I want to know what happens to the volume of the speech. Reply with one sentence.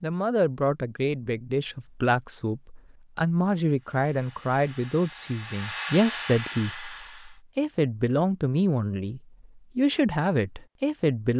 The volume of the speech stays about the same.